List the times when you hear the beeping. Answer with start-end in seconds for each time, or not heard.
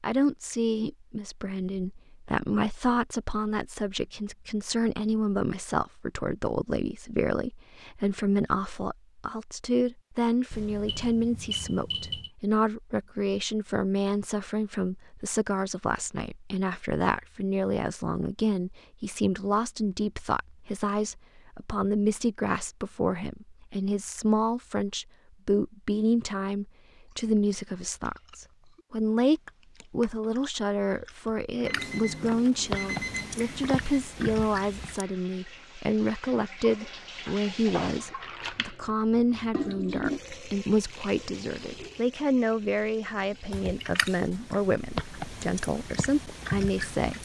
10.5-12.3, 31.6-34.0.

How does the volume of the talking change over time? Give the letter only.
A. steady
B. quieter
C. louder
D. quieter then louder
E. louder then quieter
A.